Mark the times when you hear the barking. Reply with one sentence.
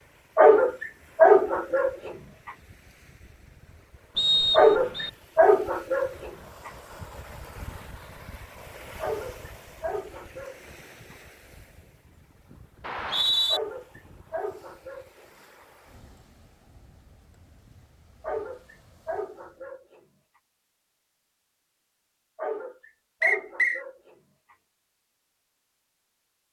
You can hear the barking from 0.3 to 2.1 s, from 4.5 to 6.7 s, from 9.0 to 11.2 s, from 13.4 to 15.7 s, from 18.2 to 20.0 s and from 22.4 to 24.6 s.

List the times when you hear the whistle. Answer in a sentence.
You can hear the whistle from 4.2 to 5.1 s, from 12.8 to 13.6 s and from 23.2 to 23.8 s.